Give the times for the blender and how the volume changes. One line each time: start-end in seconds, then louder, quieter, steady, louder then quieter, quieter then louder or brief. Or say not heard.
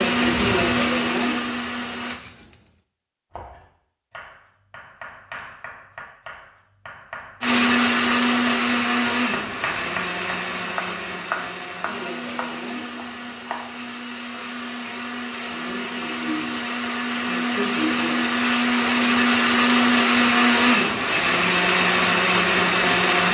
0.0-2.2 brief
7.4-23.3 quieter then louder.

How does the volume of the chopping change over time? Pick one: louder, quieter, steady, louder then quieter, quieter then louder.
louder then quieter.